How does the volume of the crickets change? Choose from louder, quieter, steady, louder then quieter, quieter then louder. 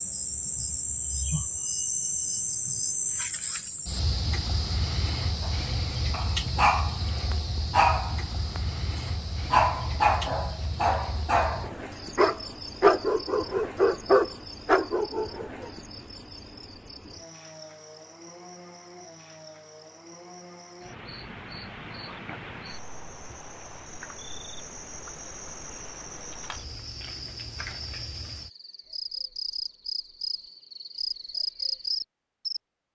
quieter then louder.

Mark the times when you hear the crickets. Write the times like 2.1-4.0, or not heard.
0.0-32.6.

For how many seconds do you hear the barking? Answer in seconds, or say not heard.
10 s.